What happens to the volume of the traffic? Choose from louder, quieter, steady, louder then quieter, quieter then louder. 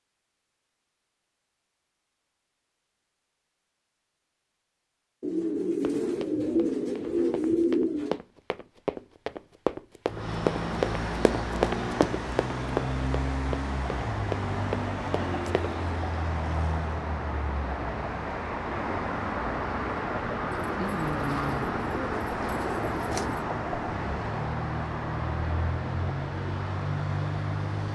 steady.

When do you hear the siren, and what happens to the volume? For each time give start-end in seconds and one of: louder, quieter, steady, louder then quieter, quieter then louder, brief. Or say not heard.
not heard.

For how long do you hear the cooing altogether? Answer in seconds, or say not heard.
6 s.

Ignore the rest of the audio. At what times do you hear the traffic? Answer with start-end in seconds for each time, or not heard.
10.1-27.8.